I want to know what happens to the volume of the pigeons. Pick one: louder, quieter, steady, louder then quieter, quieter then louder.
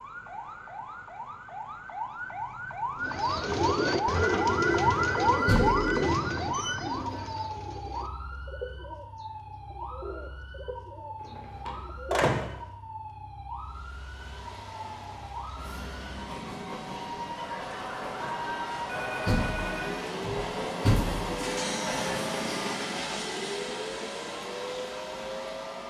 quieter.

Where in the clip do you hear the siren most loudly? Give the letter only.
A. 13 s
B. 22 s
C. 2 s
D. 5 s
D.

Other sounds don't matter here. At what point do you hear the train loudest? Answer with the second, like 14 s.
22 s.